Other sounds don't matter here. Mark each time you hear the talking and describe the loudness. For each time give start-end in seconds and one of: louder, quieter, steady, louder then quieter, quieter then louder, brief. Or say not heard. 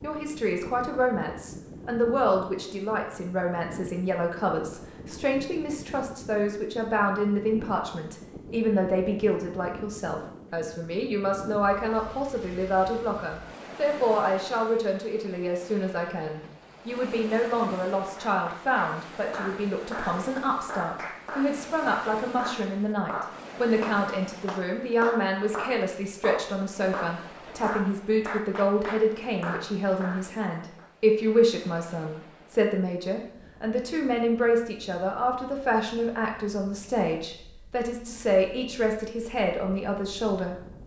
0.0-40.8 steady.